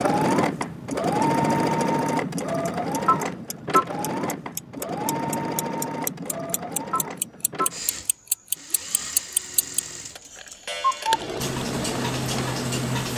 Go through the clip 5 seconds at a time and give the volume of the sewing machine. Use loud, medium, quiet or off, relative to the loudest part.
loud, medium, medium.